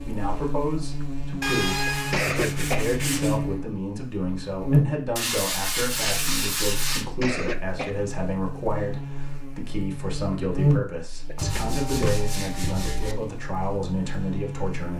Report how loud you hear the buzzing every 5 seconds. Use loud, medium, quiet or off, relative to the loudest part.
loud, medium, loud.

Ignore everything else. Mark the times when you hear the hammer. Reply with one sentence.
You can't hear the hammer here.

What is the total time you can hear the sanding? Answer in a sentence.
You can hear the sanding for 6 seconds altogether.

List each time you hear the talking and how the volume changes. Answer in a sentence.
You can hear the talking from 0.0 to 14.9 s, at a steady volume.